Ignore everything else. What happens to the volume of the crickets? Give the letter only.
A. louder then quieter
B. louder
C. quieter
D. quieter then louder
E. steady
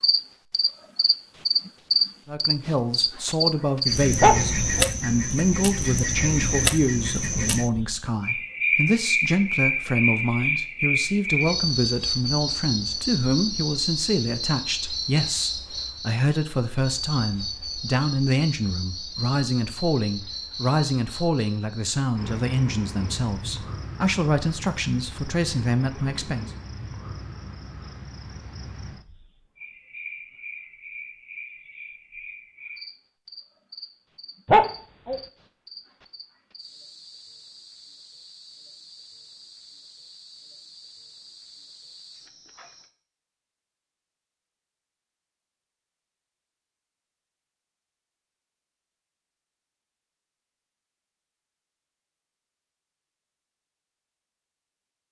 C.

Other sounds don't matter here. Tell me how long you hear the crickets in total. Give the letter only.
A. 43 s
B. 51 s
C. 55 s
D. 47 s
A.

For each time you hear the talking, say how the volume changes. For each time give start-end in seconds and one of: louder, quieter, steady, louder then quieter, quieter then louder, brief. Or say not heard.
2.2-26.5 steady.